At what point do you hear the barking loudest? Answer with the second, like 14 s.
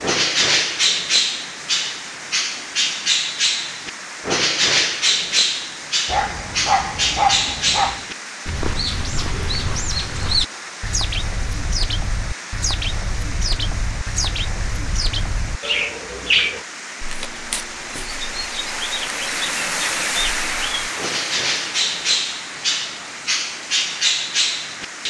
7 s.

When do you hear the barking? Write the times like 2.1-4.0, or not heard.
6.0-8.1.